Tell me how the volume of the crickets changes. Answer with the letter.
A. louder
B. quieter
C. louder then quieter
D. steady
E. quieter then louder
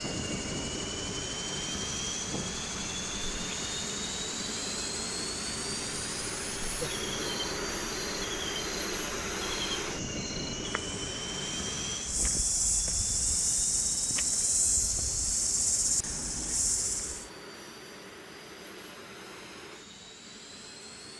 A.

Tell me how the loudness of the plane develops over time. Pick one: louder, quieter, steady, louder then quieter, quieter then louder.
quieter.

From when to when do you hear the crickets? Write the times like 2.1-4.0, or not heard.
0.0-17.3.